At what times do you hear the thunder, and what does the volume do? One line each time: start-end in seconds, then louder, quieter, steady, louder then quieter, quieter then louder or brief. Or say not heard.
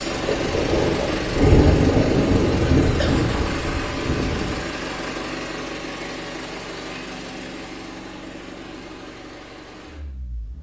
0.2-4.7 louder then quieter.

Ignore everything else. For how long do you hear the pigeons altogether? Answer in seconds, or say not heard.
not heard.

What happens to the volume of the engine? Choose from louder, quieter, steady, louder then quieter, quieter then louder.
quieter.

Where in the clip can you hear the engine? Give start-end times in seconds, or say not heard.
0.0-10.5.